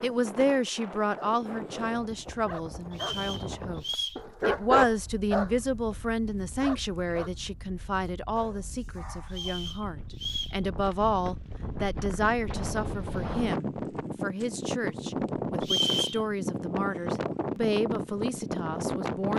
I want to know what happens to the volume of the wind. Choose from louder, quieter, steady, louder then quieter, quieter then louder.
quieter then louder.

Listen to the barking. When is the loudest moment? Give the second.
5 s.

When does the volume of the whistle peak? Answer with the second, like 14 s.
16 s.